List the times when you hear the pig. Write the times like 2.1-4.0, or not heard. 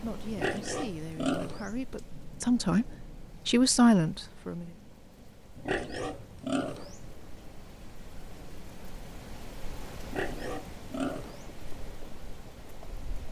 0.3-1.8, 5.5-7.0, 10.1-11.5.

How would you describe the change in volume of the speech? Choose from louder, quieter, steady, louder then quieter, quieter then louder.
louder.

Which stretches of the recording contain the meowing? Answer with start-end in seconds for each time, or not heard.
not heard.